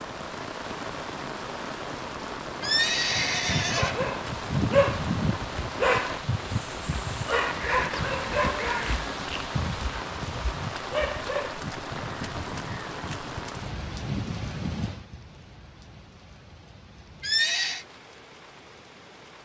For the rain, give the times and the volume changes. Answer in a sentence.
The rain can be heard from 0.0 to 19.4 s, getting quieter.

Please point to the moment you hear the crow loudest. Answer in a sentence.
The loudest moment of the crow is at 5 seconds.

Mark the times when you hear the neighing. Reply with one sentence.
The neighing can be heard from 2.6 to 4.0 s and from 17.2 to 17.9 s.